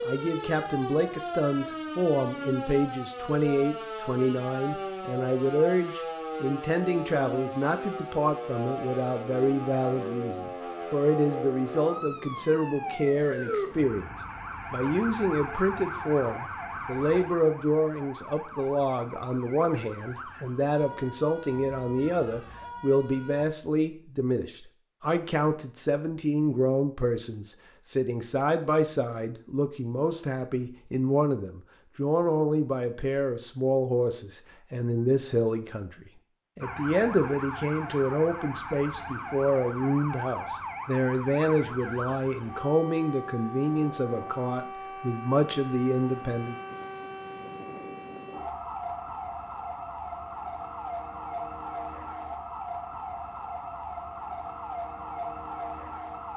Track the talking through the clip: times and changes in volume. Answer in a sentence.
You can hear the talking from 0.0 to 46.5 s, at a steady volume.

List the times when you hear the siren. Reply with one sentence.
You can hear the siren from 0.0 to 23.4 s and from 36.6 to 56.3 s.